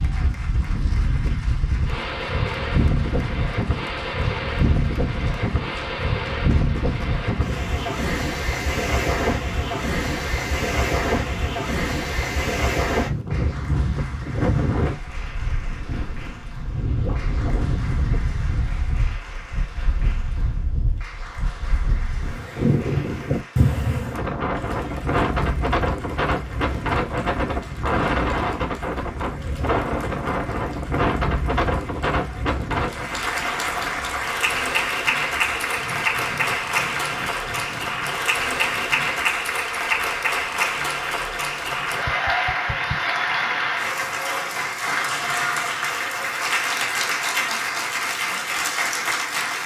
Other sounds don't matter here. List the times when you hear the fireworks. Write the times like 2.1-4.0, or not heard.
not heard.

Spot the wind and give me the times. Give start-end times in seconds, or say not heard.
0.0-39.0.